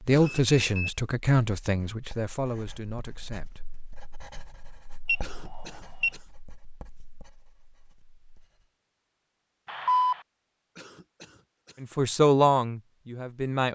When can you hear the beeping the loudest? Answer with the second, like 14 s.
10 s.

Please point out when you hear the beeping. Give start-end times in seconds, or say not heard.
0.2-0.9, 5.0-6.1, 9.7-10.2.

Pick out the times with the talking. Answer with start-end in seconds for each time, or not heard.
0.0-3.8, 11.8-13.6.